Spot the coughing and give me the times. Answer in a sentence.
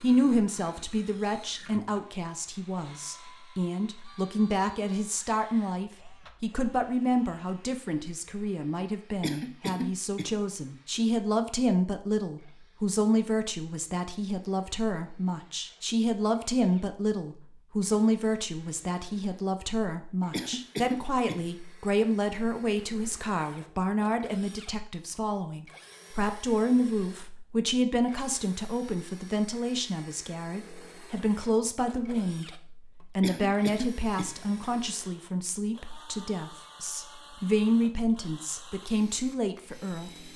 The coughing can be heard from 9.2 to 10.3 s, from 20.3 to 21.4 s and from 33.2 to 34.3 s.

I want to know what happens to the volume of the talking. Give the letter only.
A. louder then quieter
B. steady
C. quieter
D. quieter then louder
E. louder
B.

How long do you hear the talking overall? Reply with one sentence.
The talking can be heard for 40 seconds in total.